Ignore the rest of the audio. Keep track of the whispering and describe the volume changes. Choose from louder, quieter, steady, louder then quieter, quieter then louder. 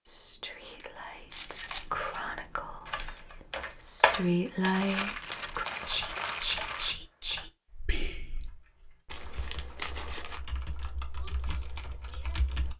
louder then quieter.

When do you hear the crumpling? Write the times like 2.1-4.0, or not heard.
1.3-2.2, 4.7-7.0, 9.1-10.4.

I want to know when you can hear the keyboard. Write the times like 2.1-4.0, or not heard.
2.9-12.7.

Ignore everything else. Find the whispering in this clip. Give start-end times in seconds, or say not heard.
0.1-8.5.